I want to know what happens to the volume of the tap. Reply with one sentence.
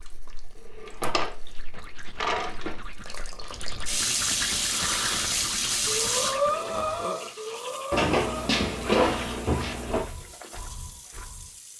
The loudness of the tap goes up, then down.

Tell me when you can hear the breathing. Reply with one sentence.
You can hear the breathing from 4.7 to 11.6 s.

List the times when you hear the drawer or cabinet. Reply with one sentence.
You can hear the drawer or cabinet from 0.8 to 2.8 s and from 7.9 to 10.1 s.